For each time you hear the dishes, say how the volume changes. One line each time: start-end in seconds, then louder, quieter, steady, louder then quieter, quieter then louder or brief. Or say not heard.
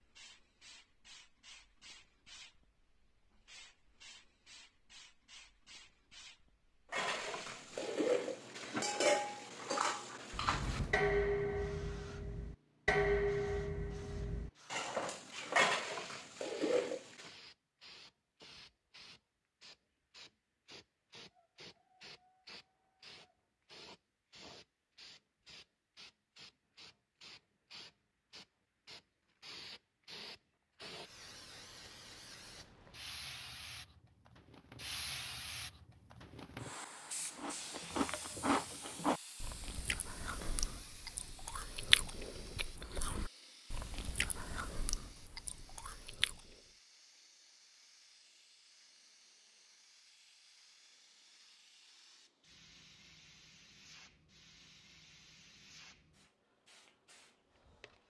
6.9-17.3 steady.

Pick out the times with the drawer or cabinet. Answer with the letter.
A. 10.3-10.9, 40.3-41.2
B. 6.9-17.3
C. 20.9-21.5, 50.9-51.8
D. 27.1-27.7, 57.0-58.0
A.